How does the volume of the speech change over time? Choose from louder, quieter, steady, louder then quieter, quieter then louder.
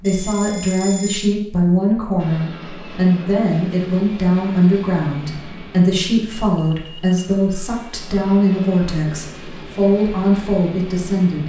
steady.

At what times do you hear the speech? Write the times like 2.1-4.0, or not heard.
0.0-11.4.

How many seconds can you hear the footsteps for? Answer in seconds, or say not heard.
not heard.